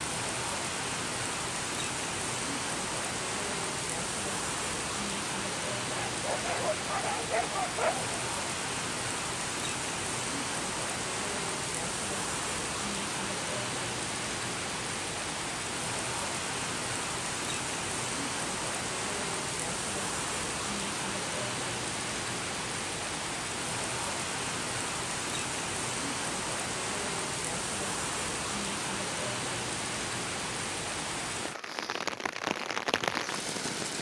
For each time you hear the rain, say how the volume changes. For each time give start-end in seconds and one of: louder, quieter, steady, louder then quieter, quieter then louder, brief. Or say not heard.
0.0-33.9 steady.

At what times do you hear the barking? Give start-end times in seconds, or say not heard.
5.9-8.2.